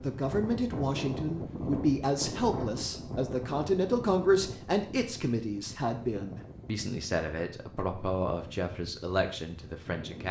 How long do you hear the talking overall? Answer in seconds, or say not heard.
10 s.